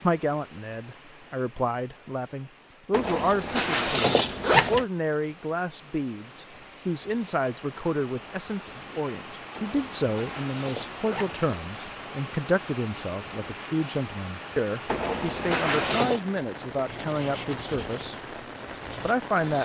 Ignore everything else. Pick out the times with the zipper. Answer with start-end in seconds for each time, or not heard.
2.9-4.8, 9.6-11.4, 14.8-16.2.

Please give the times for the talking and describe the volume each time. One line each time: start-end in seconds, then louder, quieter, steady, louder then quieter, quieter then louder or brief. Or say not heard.
0.0-18.1 steady
19.0-19.5 brief.